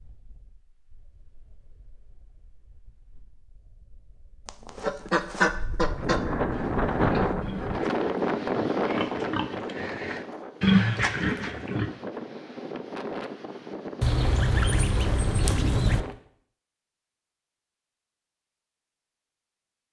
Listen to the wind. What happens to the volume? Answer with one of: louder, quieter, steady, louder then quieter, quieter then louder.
louder then quieter.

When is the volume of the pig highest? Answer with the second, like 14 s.
11 s.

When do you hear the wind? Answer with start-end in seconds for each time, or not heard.
0.0-16.1.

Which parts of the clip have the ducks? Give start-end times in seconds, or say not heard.
4.5-6.2, 14.0-16.0.